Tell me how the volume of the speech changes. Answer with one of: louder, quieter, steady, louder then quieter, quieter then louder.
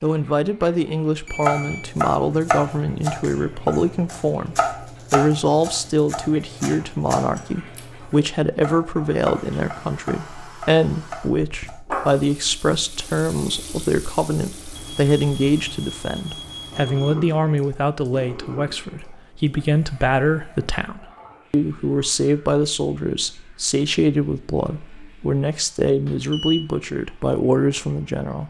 steady.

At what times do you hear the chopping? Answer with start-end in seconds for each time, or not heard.
1.4-11.8.